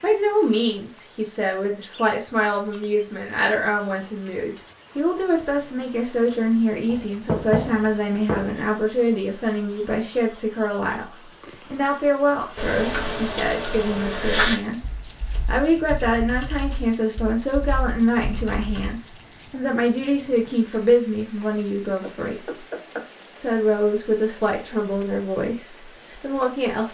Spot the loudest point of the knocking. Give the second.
7 s.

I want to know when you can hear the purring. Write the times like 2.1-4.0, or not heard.
not heard.